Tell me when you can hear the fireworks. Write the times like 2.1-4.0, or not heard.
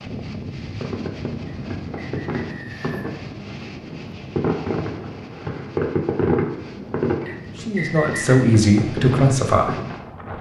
0.6-9.9.